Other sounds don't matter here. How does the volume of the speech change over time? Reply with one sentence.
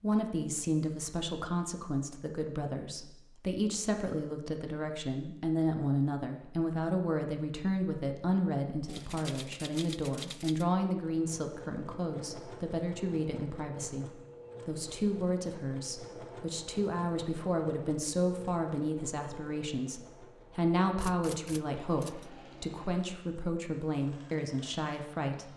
The loudness of the speech stays about the same.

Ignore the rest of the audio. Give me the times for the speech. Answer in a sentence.
You can hear the speech from 0.0 to 25.5 s.